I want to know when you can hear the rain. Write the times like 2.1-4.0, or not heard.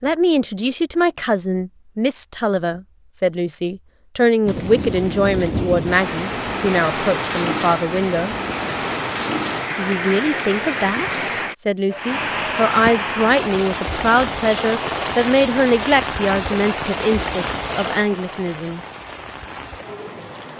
4.5-20.5.